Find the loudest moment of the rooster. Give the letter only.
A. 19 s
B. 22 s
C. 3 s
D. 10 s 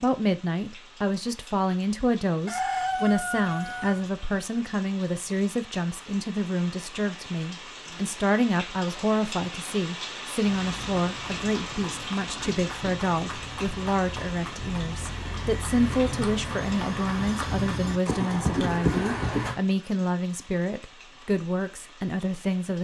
C.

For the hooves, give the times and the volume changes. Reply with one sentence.
The hooves can be heard from 10.4 to 19.6 s, getting louder.